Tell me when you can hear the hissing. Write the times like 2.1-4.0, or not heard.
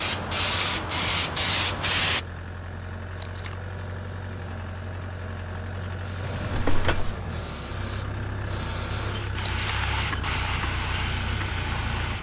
0.0-2.2, 6.0-12.1.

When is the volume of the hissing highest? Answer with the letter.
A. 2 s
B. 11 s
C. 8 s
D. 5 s
A.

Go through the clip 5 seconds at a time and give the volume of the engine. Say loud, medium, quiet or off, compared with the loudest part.
medium, loud, loud.